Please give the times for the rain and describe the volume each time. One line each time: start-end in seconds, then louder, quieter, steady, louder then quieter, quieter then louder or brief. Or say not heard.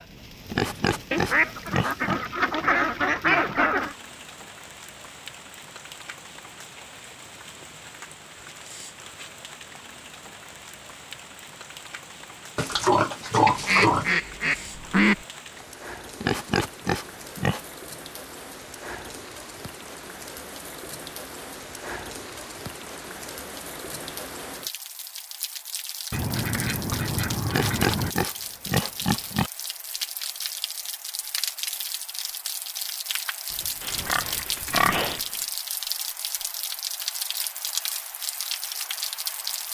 0.0-39.6 louder.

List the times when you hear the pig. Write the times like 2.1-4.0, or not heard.
0.5-2.2, 12.6-14.2, 16.2-17.6, 27.4-29.5, 33.8-35.2.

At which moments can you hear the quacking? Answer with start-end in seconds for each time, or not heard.
1.1-4.0, 13.4-15.2, 26.1-28.1, 33.5-35.3.